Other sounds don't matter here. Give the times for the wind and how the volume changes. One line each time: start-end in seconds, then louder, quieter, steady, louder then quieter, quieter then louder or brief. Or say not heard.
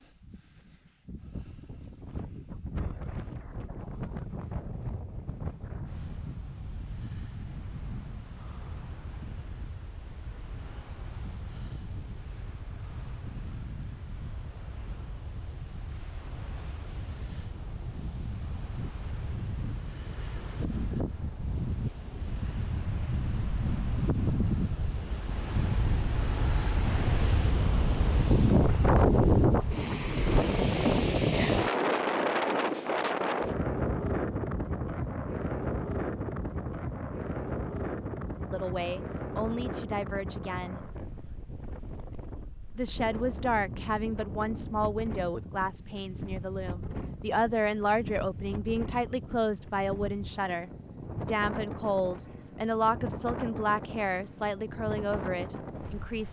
0.0-56.2 louder then quieter.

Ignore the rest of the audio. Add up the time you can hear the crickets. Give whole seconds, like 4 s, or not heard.
not heard.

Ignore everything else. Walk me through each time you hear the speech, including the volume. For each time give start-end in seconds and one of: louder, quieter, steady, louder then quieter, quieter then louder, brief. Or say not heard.
38.5-40.8 brief
42.8-56.2 steady.